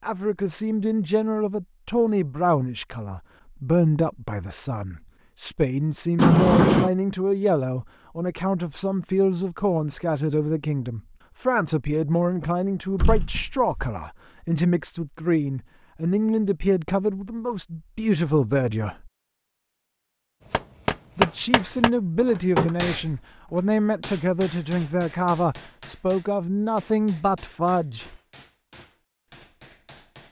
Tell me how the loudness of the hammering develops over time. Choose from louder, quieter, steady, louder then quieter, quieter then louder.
quieter.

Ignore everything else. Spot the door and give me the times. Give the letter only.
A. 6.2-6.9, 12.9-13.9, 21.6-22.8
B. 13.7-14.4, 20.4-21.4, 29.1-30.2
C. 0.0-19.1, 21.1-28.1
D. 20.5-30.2
A.